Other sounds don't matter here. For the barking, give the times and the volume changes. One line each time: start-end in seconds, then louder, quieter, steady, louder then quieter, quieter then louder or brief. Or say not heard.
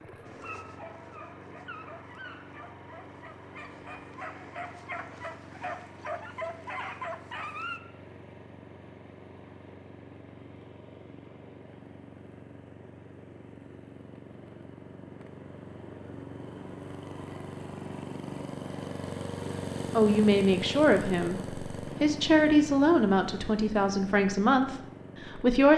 0.2-7.8 louder.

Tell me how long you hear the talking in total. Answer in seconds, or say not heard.
6 s.